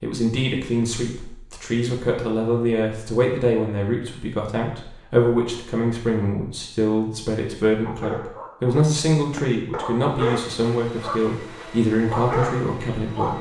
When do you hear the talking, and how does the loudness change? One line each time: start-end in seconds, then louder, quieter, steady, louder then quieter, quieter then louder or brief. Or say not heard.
0.0-13.3 steady.